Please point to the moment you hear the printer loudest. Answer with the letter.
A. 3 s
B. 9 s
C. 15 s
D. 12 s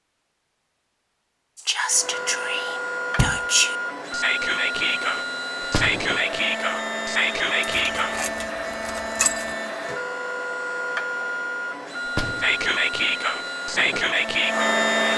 C.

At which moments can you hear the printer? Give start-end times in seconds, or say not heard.
1.9-15.1.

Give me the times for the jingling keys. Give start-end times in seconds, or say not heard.
7.8-9.6.